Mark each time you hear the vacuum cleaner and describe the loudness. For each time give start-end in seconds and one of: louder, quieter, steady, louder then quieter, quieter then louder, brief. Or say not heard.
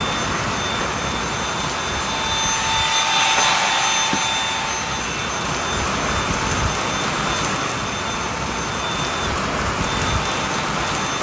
0.0-11.1 louder then quieter.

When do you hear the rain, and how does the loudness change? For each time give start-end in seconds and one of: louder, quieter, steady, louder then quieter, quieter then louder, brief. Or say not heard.
0.0-11.1 quieter then louder.